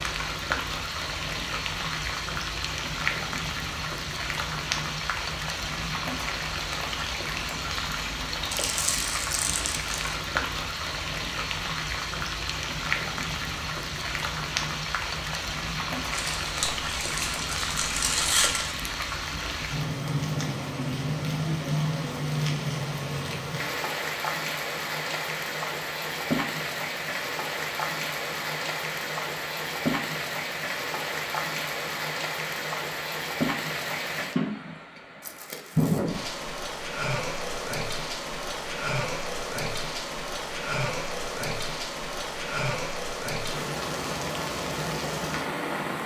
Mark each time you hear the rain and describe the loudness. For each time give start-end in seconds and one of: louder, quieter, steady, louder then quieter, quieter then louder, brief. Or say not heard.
0.0-46.0 steady.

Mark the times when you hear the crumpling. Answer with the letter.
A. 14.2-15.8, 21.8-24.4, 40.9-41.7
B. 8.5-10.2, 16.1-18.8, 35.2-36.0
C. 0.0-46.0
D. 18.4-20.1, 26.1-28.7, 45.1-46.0
B.